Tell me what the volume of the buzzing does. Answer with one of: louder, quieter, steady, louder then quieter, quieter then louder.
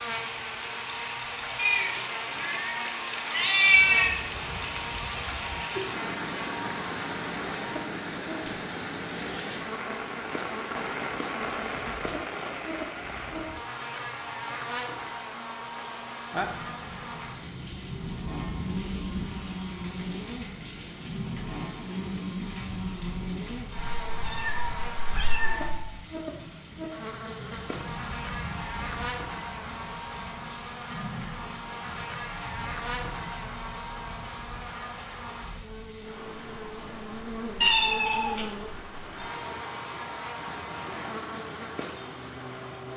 steady.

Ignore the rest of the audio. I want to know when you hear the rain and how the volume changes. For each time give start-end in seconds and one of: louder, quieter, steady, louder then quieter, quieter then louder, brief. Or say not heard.
0.0-42.9 quieter.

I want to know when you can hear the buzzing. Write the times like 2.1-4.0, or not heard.
0.0-42.9.